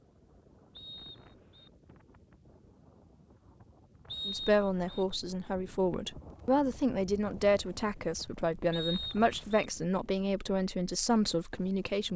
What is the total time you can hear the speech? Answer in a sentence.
You can hear the speech for 8 seconds altogether.